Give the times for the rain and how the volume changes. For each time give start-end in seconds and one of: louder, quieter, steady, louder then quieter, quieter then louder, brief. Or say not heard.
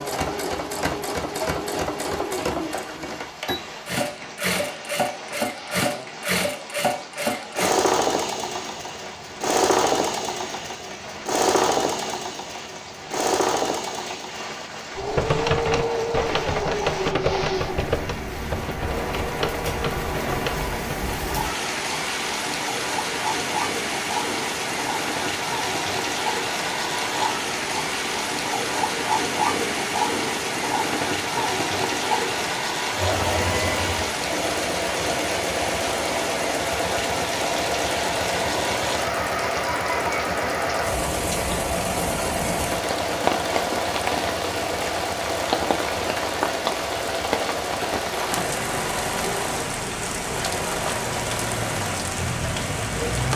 0.0-53.3 louder.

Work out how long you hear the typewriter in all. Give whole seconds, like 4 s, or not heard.
6 s.